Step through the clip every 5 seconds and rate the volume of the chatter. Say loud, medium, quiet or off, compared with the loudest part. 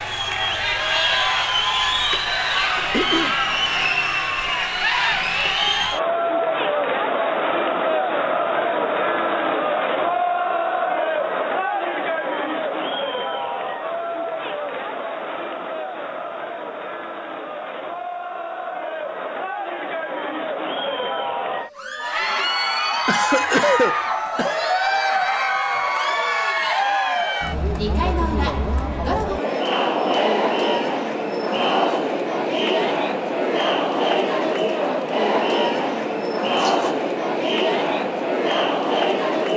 loud, loud, loud, medium, loud, loud, loud, loud.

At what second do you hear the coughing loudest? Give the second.
24 s.